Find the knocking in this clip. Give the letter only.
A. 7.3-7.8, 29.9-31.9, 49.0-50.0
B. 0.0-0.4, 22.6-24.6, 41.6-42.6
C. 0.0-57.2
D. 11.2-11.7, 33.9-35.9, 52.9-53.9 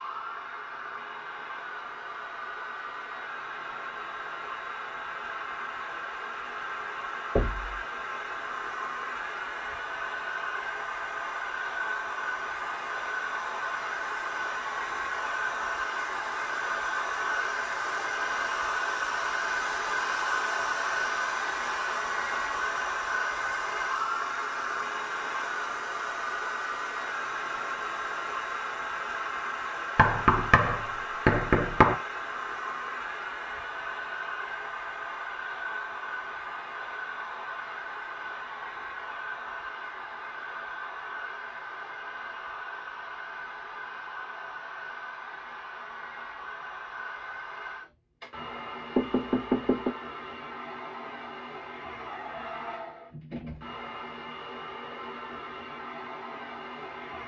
A.